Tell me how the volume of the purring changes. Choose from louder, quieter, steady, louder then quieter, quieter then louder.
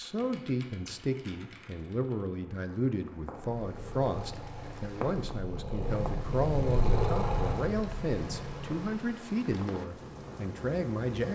louder then quieter.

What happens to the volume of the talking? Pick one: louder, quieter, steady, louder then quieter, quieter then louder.
steady.